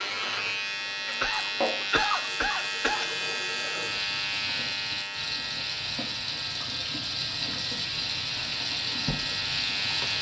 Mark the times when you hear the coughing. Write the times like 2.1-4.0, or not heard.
1.2-3.1.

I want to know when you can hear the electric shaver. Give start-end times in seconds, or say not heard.
0.0-10.1.